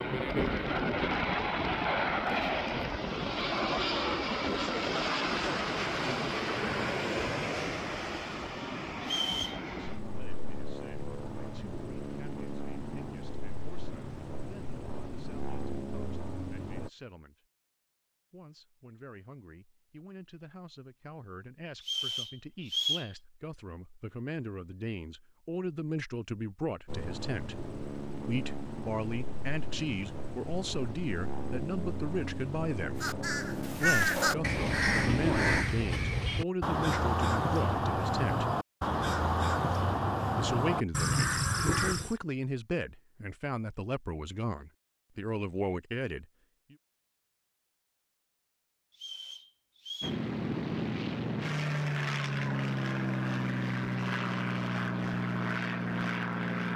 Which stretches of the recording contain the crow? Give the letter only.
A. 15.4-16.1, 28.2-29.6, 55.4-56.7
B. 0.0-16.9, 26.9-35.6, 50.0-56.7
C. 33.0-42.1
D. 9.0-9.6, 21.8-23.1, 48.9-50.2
C.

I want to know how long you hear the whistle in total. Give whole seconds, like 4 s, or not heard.
3 s.